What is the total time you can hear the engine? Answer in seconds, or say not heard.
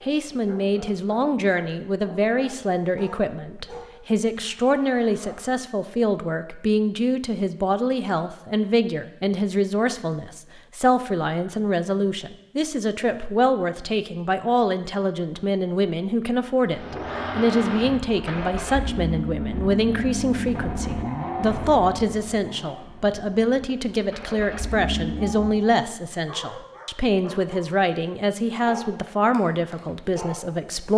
9 s.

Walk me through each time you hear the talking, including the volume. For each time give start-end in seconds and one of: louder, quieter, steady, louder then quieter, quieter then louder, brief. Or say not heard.
0.0-30.9 steady.